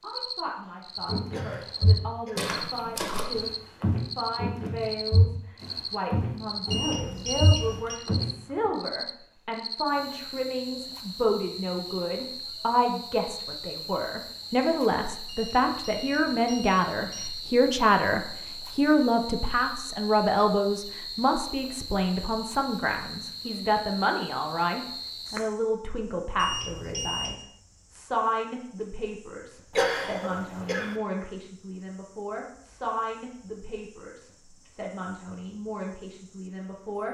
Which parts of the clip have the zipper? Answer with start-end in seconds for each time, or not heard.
not heard.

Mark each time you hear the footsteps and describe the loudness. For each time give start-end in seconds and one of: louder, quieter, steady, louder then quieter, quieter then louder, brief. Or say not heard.
1.1-8.7 steady.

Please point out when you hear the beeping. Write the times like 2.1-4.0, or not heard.
6.7-8.0, 15.2-17.3, 26.4-27.4.